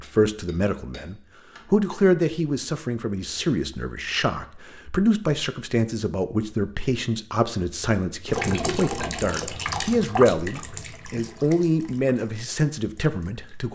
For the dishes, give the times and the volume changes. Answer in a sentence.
The dishes can't be heard in this clip.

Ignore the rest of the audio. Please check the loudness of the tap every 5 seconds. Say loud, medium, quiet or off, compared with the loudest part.
off, loud, medium.